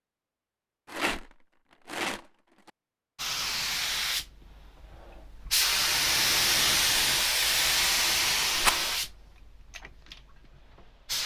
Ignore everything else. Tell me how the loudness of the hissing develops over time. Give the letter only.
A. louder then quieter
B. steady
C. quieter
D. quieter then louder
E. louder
A.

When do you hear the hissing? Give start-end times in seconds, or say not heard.
3.1-11.2.